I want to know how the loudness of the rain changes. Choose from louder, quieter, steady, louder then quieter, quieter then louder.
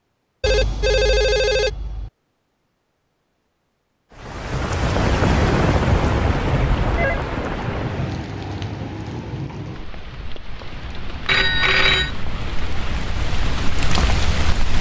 quieter then louder.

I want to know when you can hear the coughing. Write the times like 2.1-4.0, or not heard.
not heard.